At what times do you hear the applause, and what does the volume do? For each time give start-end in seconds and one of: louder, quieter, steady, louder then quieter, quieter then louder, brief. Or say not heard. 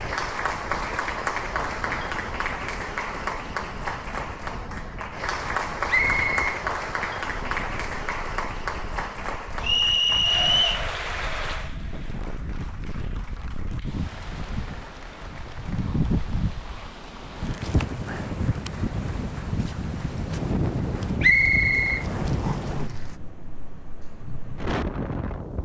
0.0-23.2 quieter.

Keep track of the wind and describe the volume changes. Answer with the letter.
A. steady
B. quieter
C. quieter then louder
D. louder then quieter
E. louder
E.